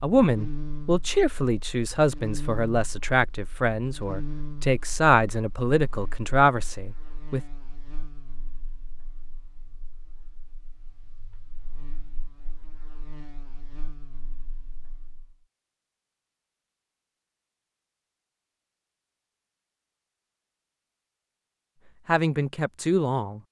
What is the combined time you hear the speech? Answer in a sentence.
You can hear the speech for 9 seconds altogether.